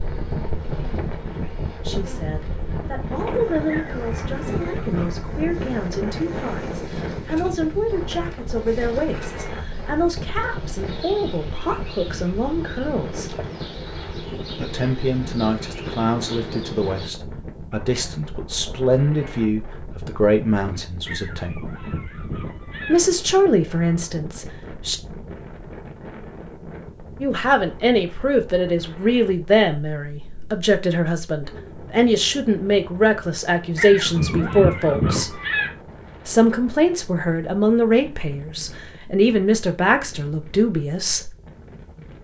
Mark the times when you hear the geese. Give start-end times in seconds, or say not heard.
3.6-5.2, 21.1-23.0, 33.8-35.7.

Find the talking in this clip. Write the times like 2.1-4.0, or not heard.
1.8-13.3, 14.6-21.6, 22.9-25.0, 27.2-35.4, 36.2-41.4.